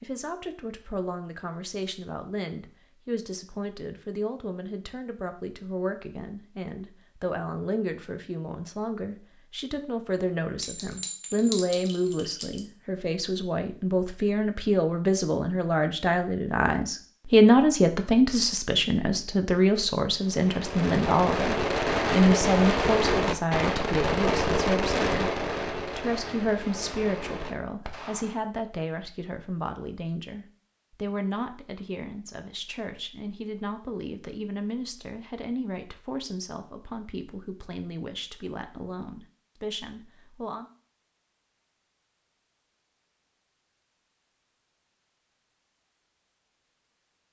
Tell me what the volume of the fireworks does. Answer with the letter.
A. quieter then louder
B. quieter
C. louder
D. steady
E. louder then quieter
B.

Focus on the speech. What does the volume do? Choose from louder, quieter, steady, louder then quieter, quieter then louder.
louder then quieter.